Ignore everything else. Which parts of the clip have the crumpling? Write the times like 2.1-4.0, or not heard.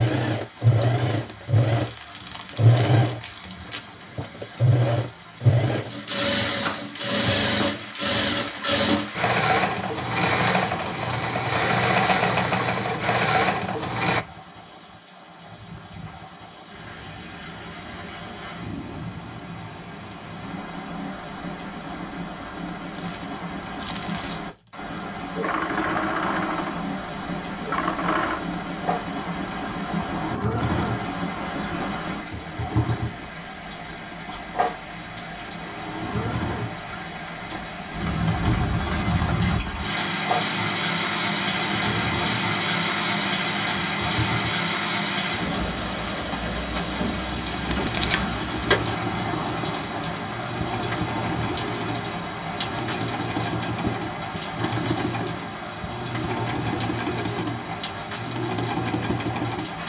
1.7-3.8, 22.8-24.9, 47.6-48.3.